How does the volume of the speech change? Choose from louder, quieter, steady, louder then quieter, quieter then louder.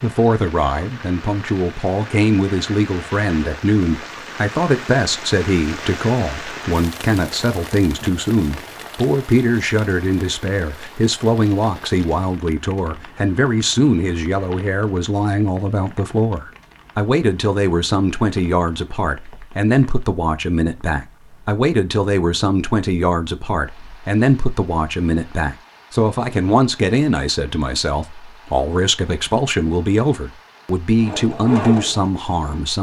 steady.